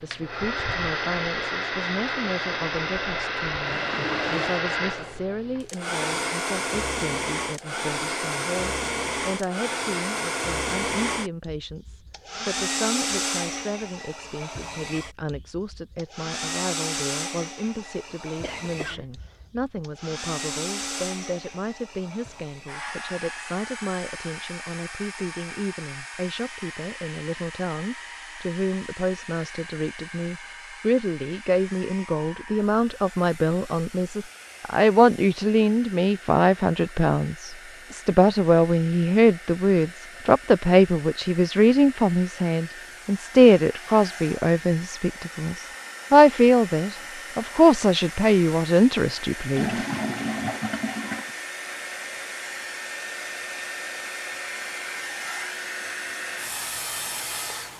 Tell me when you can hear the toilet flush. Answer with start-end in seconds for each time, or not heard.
3.6-4.7, 49.5-51.3.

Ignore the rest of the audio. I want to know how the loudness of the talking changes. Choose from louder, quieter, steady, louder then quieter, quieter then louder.
louder.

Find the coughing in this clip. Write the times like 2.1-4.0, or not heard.
18.4-19.4.